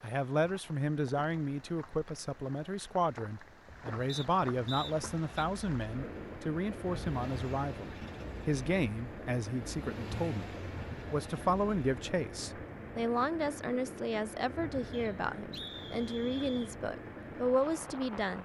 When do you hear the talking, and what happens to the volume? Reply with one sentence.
You can hear the talking from 0.0 to 18.4 s, at a steady volume.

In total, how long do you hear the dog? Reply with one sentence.
The dog can't be heard in this clip.